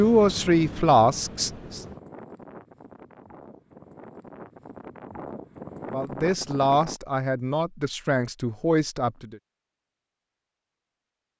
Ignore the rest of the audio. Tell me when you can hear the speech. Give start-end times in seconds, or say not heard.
0.0-1.8, 5.9-9.4.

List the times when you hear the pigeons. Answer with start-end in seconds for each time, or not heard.
not heard.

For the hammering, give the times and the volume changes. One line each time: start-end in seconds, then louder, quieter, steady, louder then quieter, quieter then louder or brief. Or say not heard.
not heard.